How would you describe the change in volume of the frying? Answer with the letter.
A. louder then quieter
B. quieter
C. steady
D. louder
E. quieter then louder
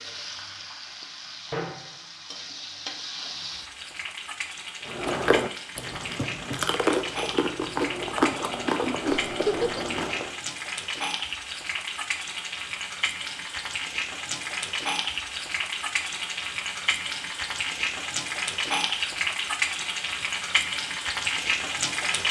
D.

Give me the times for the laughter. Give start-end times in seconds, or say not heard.
9.1-9.8.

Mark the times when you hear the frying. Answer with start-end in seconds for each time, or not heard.
0.0-22.2.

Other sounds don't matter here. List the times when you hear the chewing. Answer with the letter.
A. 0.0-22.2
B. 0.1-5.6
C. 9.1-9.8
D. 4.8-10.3
D.